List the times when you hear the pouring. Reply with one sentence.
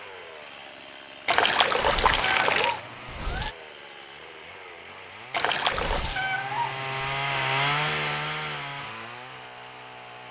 The pouring can be heard from 1.2 to 2.8 s and from 5.3 to 6.1 s.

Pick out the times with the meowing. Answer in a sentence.
You can hear the meowing from 1.8 to 3.5 s and from 5.7 to 7.0 s.